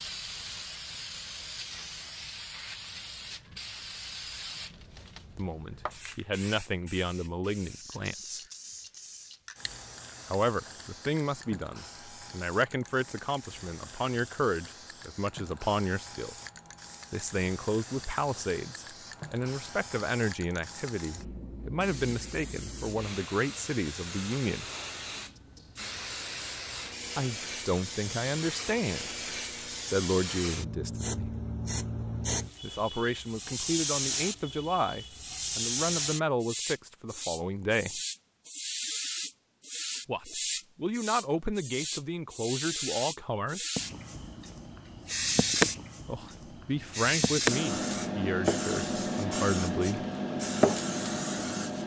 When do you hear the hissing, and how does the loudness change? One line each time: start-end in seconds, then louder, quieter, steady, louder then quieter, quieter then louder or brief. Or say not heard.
0.0-51.8 louder.